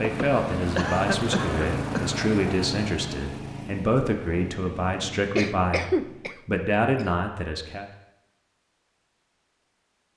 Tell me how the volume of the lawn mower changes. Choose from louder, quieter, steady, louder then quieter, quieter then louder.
quieter.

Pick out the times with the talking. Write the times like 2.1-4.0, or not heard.
0.0-7.8.